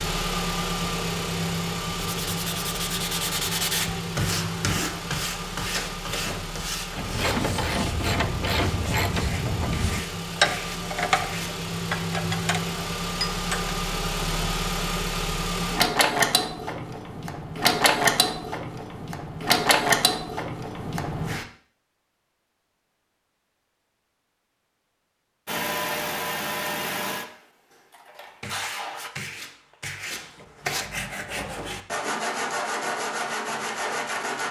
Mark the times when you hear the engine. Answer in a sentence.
The engine can be heard from 0.0 to 21.4 s and from 25.4 to 29.1 s.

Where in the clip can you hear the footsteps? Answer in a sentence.
You can't hear the footsteps here.